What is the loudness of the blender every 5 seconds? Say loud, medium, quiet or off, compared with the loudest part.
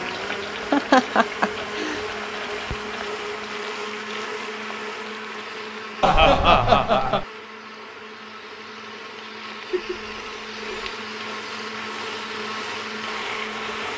loud, medium, loud.